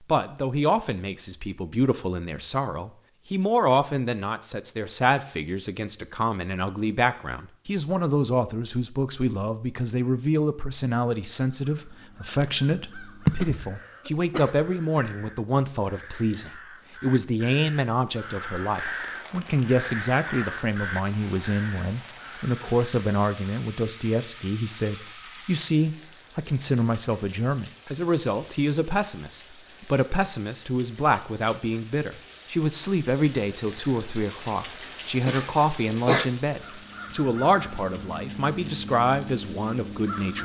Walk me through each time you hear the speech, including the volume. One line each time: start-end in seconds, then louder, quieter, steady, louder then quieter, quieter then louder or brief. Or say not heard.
0.1-40.4 steady.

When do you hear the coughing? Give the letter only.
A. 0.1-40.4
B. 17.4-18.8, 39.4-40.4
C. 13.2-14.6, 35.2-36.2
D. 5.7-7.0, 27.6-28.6
C.